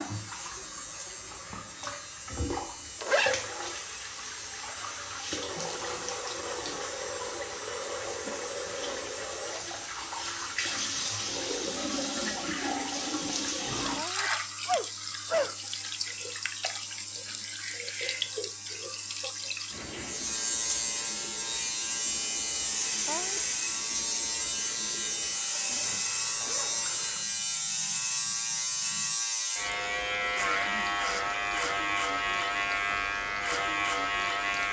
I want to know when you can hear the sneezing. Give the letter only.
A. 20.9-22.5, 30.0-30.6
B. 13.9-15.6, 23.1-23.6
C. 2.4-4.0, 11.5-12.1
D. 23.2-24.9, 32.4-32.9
B.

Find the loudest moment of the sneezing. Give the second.
15 s.